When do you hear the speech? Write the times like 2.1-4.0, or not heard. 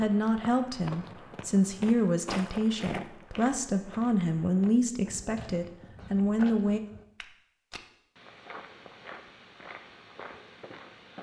0.0-6.8.